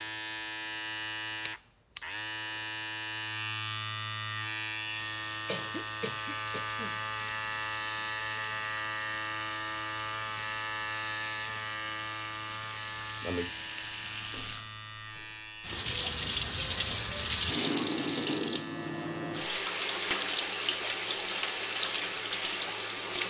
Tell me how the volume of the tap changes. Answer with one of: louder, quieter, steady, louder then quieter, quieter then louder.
louder.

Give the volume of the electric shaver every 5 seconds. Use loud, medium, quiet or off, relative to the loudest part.
loud, loud, loud, medium, medium.